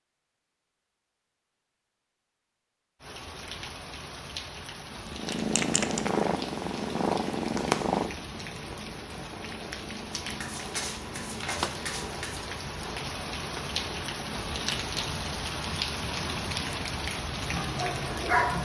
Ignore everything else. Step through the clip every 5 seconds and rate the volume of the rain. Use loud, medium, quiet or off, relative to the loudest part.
medium, medium, loud, loud.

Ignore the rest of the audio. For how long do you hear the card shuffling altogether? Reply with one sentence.
You can hear the card shuffling for 2 seconds altogether.